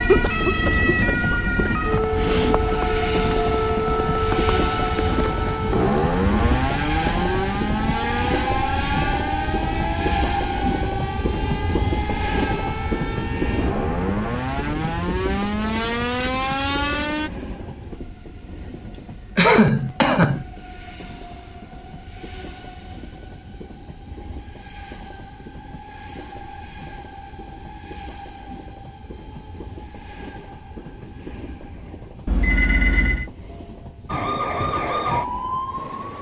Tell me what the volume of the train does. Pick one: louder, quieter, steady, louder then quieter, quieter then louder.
quieter.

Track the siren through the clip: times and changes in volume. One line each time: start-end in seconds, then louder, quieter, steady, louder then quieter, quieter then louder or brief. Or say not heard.
0.0-17.3 quieter then louder
34.0-36.1 brief.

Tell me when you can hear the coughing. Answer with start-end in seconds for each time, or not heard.
0.1-1.7, 18.9-20.4.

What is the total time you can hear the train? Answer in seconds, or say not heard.
36 s.